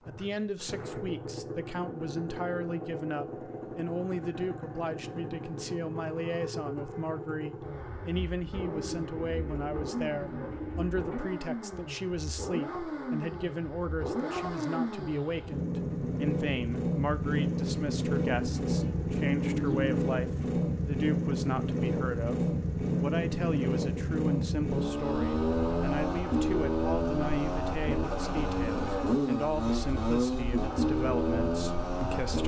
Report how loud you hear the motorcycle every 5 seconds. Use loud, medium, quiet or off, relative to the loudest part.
medium, medium, medium, loud, loud, loud, loud.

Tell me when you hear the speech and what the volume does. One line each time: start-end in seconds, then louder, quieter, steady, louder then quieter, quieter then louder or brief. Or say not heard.
0.1-32.4 steady.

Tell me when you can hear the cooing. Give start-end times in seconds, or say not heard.
8.6-11.3, 18.2-19.9.